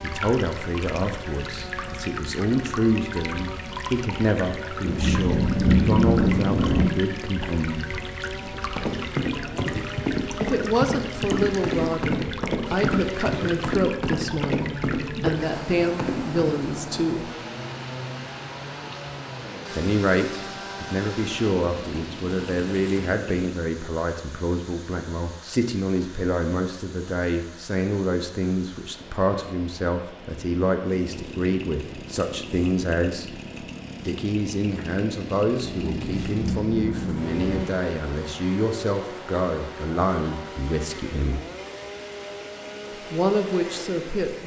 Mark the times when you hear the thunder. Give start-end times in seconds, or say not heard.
4.8-6.8, 35.8-37.6.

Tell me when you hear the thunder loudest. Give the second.
6 s.